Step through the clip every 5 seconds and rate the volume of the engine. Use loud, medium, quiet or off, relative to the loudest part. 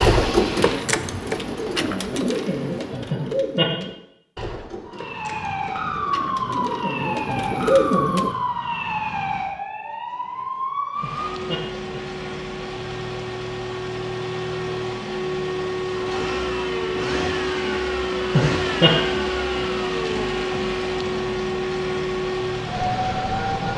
medium, off, medium, loud, loud.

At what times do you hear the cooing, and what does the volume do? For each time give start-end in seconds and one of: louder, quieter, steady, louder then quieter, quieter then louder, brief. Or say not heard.
0.0-8.3 quieter then louder.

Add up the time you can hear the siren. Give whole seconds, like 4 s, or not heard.
19 s.